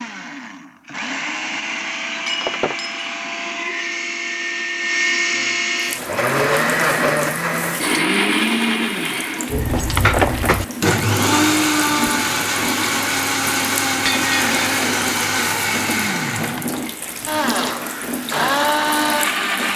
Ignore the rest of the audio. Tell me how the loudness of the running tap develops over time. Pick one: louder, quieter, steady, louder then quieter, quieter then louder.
steady.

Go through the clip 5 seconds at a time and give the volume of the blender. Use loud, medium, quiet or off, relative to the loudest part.
medium, loud, loud, loud.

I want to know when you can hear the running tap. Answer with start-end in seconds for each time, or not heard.
5.8-19.7.